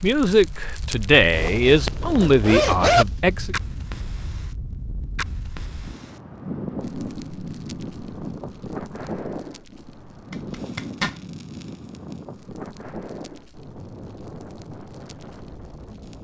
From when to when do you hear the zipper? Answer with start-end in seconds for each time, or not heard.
1.3-3.0, 10.3-11.2.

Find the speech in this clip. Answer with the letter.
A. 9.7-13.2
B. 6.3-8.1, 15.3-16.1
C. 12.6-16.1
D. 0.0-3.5
D.